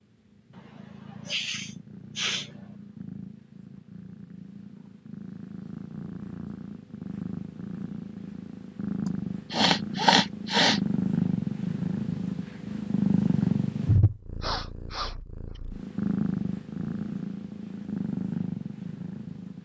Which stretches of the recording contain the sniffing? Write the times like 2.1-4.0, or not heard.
0.6-2.5, 9.1-10.8, 14.4-15.6.